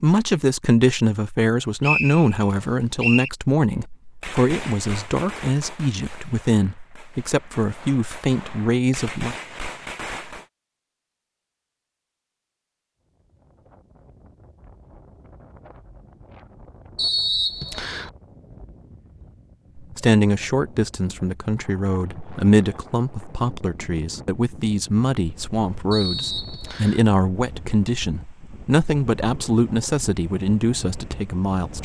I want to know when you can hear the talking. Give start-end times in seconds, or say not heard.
0.0-9.3, 19.8-31.8.